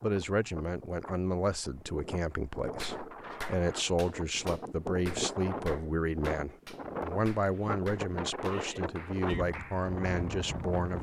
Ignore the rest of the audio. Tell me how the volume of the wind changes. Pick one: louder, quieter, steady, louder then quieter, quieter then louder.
louder.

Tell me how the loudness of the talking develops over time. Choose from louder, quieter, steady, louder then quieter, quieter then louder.
steady.